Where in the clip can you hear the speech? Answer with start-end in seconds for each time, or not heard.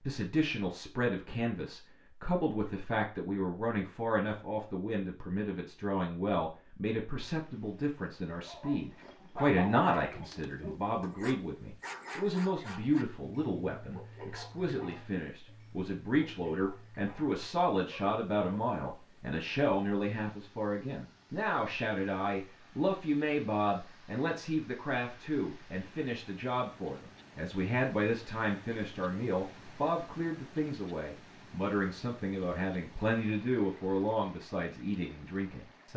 0.0-35.9.